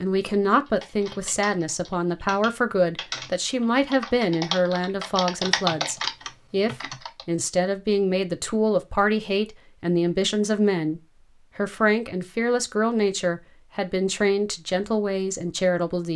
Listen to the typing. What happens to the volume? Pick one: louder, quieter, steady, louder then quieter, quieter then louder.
louder.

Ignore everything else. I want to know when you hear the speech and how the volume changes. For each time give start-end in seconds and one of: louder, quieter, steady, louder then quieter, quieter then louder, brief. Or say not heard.
0.0-16.1 steady.